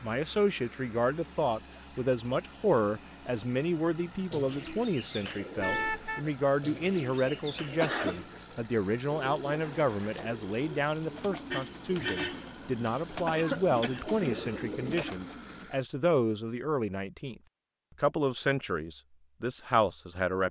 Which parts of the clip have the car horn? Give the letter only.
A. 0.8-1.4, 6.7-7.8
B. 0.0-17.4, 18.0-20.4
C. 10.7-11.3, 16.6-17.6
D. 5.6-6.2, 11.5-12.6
D.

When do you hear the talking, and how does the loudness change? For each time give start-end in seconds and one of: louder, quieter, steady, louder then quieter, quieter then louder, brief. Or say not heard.
0.0-17.4 steady
18.0-20.4 brief.